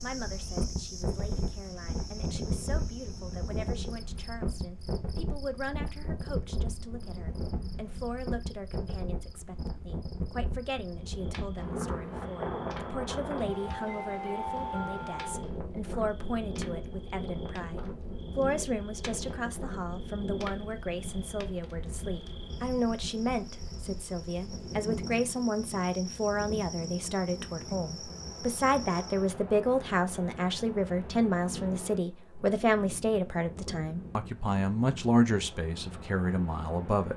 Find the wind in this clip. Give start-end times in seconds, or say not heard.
0.0-37.1.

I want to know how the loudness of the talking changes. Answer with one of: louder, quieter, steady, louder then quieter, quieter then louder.
louder.